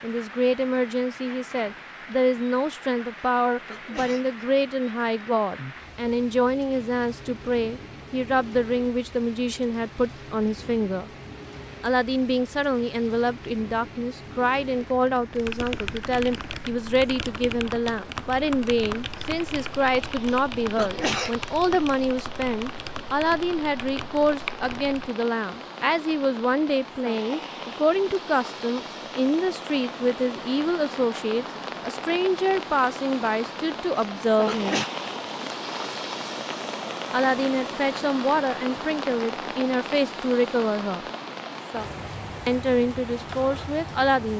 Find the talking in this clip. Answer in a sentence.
The talking can be heard from 0.0 to 11.1 s, from 11.8 to 34.8 s, from 37.1 to 41.0 s and from 42.5 to 44.3 s.